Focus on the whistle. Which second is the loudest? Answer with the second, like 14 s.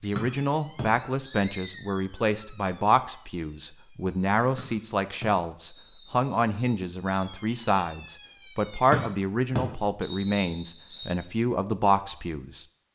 9 s.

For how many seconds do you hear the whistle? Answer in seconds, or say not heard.
6 s.